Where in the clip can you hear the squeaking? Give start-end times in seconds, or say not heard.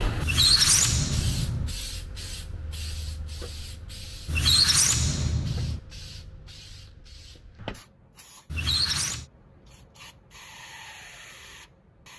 0.2-1.8, 4.2-5.8, 8.5-9.2.